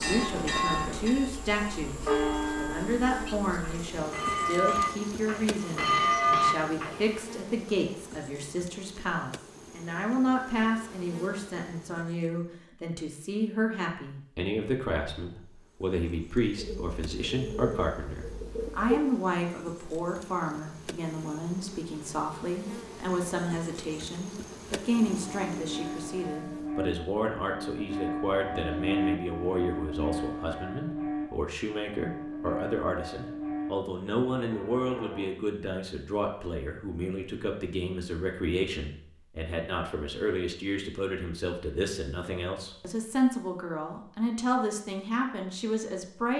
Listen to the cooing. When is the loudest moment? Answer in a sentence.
The loudest moment of the cooing is at 19 seconds.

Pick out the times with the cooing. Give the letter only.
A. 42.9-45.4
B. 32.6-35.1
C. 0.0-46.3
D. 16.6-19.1
D.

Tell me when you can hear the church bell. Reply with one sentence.
The church bell can be heard from 0.0 to 7.2 s and from 24.9 to 35.3 s.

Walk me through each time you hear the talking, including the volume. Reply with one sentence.
The talking can be heard from 0.0 to 46.3 s, at a steady volume.